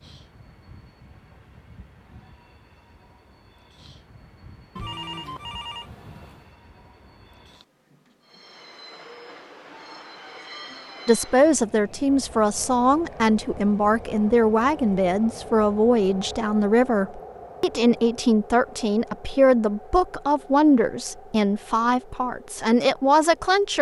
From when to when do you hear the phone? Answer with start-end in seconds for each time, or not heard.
4.8-6.5.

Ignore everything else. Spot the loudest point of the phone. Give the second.
5 s.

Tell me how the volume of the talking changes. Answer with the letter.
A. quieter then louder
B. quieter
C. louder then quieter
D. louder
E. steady
E.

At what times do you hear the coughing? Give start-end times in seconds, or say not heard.
not heard.